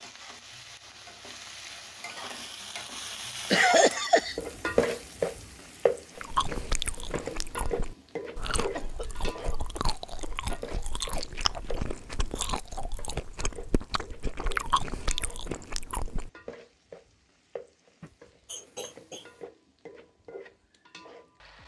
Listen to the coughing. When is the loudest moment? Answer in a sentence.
The loudest moment of the coughing is at 4 seconds.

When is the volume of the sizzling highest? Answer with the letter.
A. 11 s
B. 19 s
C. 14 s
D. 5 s
D.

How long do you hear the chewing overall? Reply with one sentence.
You can hear the chewing for 10 seconds altogether.